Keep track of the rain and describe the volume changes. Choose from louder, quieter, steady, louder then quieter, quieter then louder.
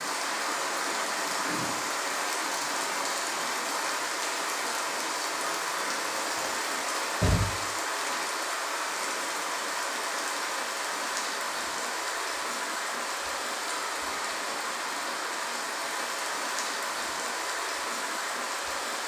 steady.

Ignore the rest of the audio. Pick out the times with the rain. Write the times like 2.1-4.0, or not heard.
0.0-19.0.